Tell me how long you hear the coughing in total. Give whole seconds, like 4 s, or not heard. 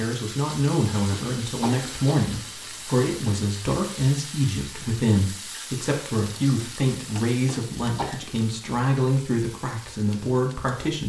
3 s.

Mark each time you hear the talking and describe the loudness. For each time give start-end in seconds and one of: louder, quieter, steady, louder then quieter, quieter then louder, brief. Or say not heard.
0.0-11.0 steady.